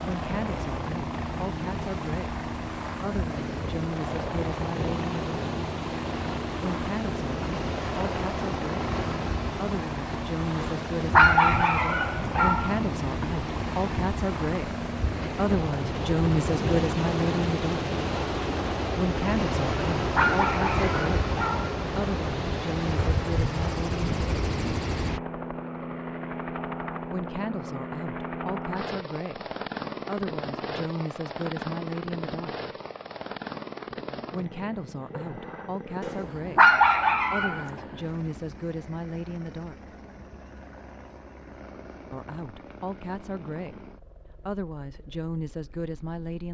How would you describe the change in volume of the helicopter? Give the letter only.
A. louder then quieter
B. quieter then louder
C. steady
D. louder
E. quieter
E.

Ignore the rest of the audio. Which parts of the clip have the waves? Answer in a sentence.
You can hear the waves from 0.0 to 25.2 s.